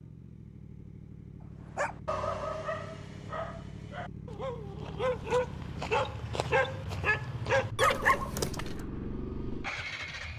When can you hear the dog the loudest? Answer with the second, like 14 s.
8 s.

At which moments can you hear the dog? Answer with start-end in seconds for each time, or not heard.
1.8-8.8.